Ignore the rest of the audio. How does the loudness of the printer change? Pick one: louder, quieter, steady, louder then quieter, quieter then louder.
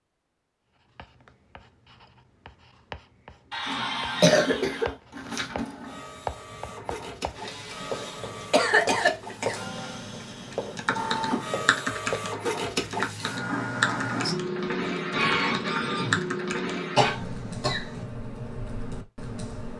louder.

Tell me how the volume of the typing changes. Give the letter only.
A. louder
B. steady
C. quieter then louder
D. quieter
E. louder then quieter
D.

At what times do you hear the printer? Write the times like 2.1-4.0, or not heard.
3.6-17.1.